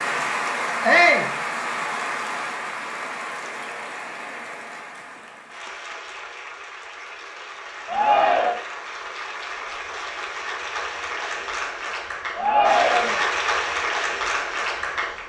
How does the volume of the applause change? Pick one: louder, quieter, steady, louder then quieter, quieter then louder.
quieter then louder.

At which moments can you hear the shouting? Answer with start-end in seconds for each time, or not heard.
0.8-1.3, 7.8-8.6, 12.3-13.2.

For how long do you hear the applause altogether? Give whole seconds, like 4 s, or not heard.
15 s.